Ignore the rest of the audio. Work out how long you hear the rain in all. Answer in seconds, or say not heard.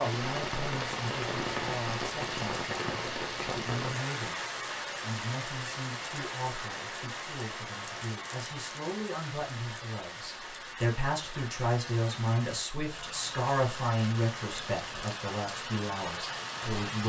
17 s.